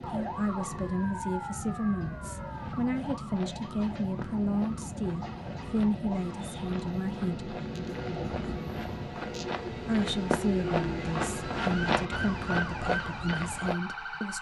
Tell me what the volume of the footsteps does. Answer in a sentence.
The loudness of the footsteps goes up.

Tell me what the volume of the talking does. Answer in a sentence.
The volume of the talking stays about the same.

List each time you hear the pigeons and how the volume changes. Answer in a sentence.
You can't hear the pigeons here.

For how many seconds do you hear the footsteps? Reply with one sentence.
The footsteps can be heard for 11 seconds in total.